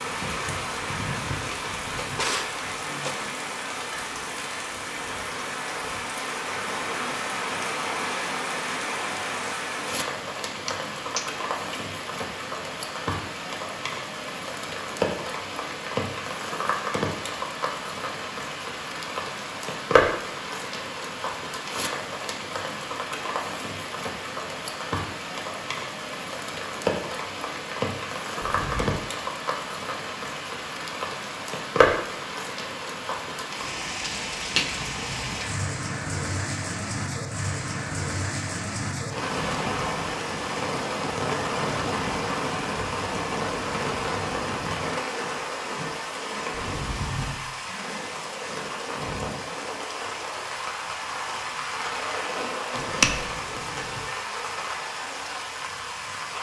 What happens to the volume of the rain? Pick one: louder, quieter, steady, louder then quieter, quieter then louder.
steady.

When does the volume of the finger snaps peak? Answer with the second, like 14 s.
53 s.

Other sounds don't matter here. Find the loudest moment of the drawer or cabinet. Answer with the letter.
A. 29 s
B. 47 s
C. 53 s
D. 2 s
D.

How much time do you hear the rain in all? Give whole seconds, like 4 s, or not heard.
56 s.